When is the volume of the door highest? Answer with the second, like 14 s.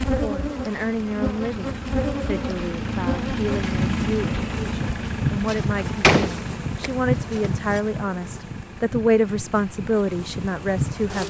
6 s.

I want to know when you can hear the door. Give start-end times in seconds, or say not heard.
5.5-7.8.